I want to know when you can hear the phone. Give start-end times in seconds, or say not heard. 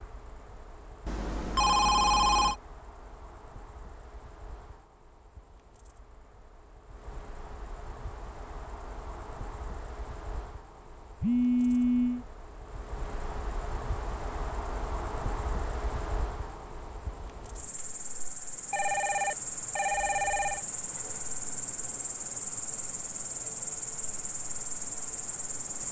1.1-2.5, 11.2-12.2, 18.7-20.6.